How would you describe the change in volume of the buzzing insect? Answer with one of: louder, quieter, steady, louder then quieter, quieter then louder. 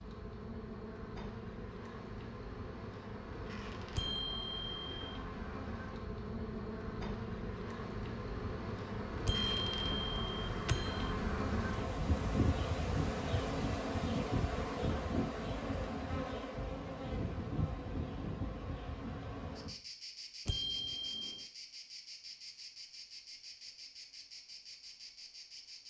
louder then quieter.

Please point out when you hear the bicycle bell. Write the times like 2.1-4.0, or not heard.
4.0-5.2, 9.2-11.2, 20.4-21.4.